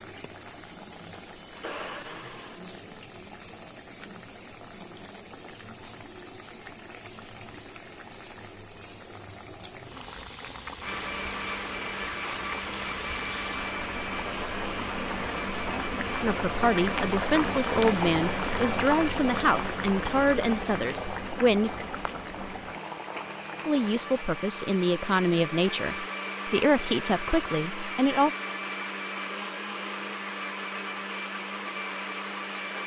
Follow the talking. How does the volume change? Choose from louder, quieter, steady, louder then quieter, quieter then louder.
steady.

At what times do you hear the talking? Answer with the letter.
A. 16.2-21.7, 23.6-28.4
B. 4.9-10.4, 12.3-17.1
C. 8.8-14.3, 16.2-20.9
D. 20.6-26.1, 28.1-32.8
A.